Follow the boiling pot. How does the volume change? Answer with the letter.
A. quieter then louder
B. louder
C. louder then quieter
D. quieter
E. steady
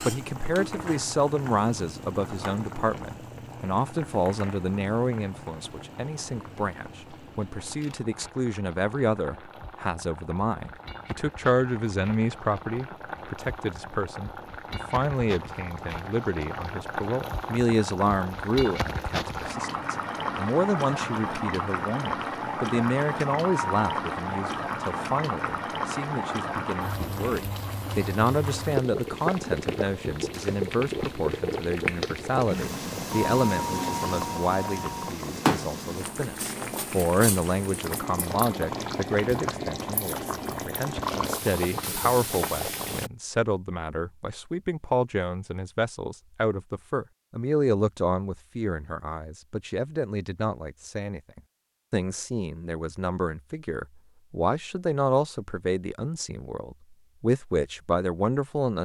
B.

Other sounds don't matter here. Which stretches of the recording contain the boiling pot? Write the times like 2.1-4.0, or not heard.
0.0-43.1.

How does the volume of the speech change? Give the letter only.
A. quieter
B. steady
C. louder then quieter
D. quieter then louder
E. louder
B.